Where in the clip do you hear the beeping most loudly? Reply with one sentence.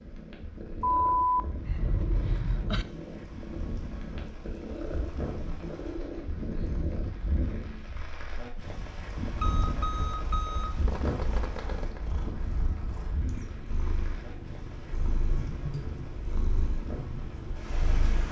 The loudest moment of the beeping is at 1 second.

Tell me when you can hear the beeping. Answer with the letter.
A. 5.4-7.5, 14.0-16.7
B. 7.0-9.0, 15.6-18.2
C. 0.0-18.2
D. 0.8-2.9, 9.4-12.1
D.